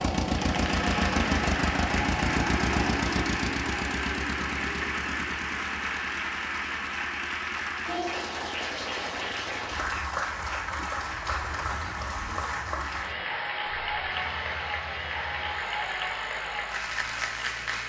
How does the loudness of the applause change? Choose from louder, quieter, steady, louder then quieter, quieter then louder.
steady.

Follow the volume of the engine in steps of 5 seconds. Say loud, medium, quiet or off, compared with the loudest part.
loud, quiet, quiet, quiet.